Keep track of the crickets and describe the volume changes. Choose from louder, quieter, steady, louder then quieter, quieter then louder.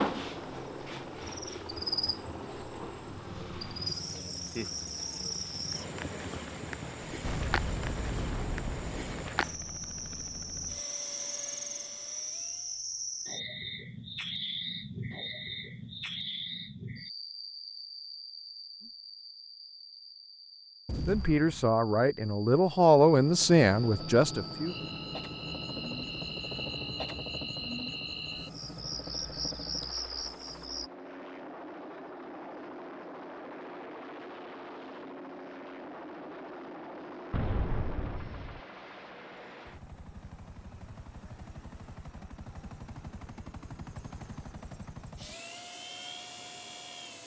quieter then louder.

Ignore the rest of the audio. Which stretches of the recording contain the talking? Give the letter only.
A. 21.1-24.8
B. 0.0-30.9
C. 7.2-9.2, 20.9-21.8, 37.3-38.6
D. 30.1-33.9
A.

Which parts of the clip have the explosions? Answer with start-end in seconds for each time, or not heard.
7.2-9.2, 20.9-21.8, 37.3-38.6.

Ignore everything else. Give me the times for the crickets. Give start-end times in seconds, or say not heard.
0.0-30.9.